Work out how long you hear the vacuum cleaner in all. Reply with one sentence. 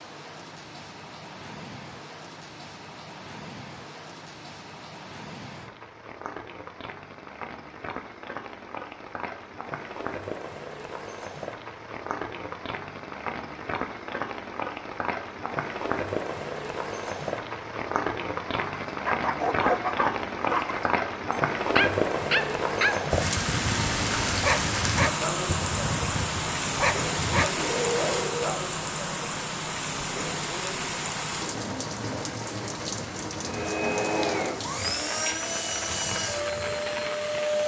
You can hear the vacuum cleaner for 4 seconds altogether.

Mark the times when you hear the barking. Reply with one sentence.
The barking can be heard from 18.8 to 28.6 s.